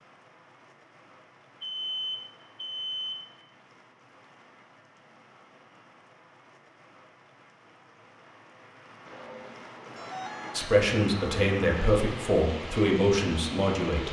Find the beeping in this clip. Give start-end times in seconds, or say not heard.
1.6-3.1, 9.1-10.6.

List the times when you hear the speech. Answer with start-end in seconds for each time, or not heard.
10.6-14.0.